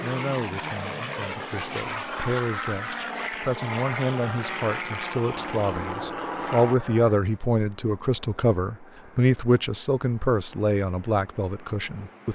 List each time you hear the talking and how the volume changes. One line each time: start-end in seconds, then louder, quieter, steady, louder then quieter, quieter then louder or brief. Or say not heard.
0.0-12.2 louder.